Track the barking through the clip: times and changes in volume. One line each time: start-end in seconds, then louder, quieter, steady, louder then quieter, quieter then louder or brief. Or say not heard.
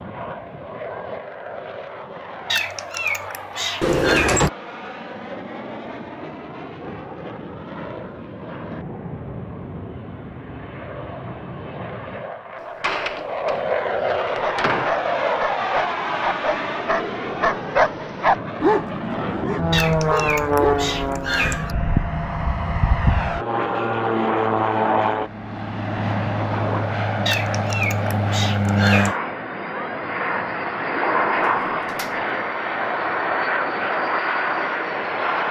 14.4-20.8 louder then quieter.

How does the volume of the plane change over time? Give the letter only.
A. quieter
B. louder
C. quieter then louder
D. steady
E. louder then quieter
B.